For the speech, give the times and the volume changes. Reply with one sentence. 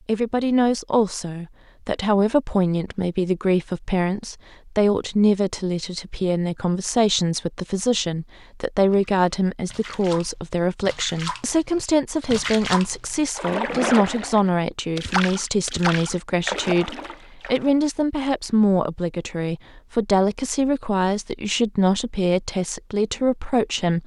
You can hear the speech from 0.1 to 24.0 s, at a steady volume.